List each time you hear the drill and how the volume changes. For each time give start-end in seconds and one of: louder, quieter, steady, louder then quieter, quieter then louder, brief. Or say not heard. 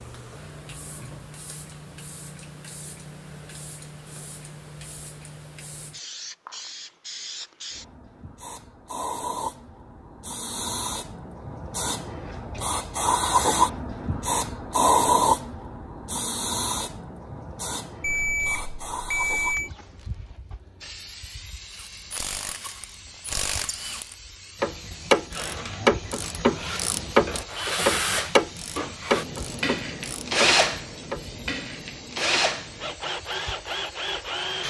25.3-34.6 louder then quieter.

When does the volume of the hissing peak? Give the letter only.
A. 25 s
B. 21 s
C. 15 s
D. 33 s
C.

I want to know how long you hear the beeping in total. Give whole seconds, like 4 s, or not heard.
2 s.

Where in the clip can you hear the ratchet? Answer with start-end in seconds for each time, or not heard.
21.7-31.2.